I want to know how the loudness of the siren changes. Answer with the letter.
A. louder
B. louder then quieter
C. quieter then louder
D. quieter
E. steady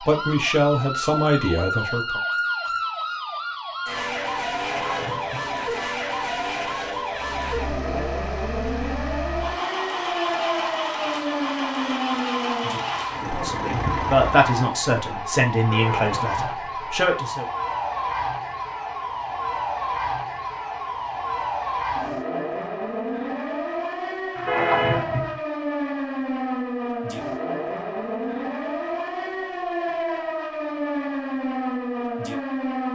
E.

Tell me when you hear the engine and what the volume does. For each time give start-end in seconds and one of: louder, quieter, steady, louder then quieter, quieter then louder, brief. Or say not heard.
7.1-14.5 louder.